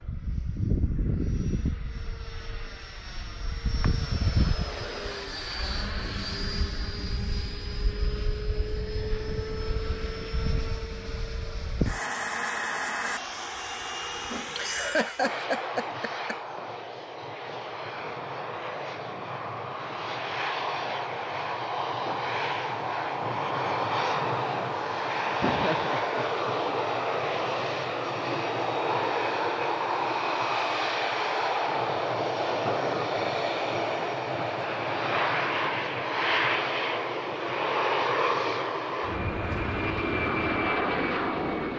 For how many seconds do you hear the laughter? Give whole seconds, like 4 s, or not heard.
3 s.